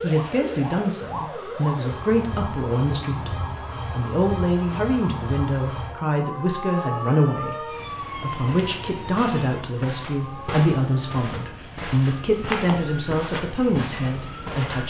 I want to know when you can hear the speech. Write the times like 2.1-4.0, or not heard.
0.0-14.8.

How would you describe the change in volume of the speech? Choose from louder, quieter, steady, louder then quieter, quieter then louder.
steady.